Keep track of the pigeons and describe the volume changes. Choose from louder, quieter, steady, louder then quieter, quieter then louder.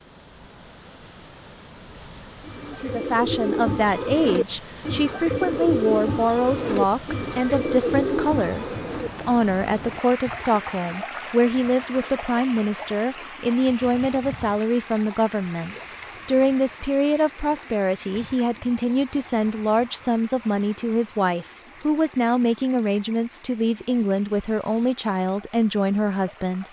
steady.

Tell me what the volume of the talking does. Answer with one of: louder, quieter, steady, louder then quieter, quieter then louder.
steady.